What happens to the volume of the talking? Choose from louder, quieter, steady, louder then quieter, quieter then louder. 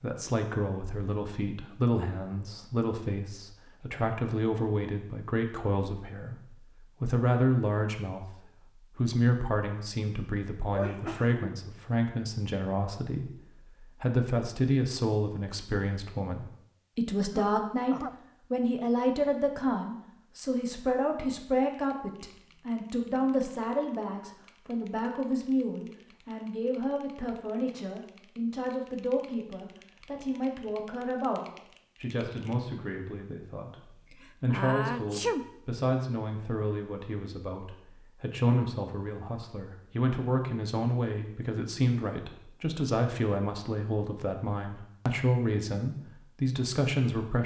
steady.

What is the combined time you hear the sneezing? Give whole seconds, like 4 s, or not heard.
3 s.